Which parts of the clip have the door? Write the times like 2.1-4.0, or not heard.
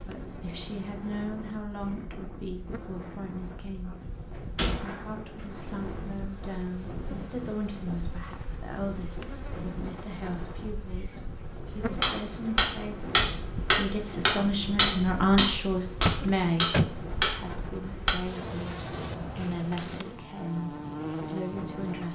4.3-5.7, 16.1-16.9.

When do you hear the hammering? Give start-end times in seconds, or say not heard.
12.0-17.4.